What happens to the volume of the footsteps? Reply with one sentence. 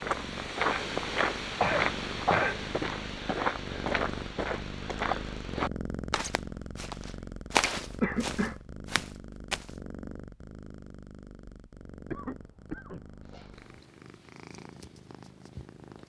The loudness of the footsteps goes down, then up.